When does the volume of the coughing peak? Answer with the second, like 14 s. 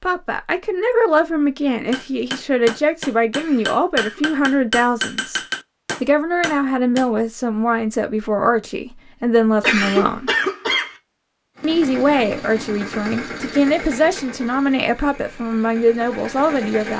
10 s.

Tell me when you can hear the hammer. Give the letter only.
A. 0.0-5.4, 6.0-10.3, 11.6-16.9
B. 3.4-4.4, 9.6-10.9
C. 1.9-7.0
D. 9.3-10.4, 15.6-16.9
C.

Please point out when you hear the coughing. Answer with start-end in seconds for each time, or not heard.
3.4-4.4, 9.6-10.9.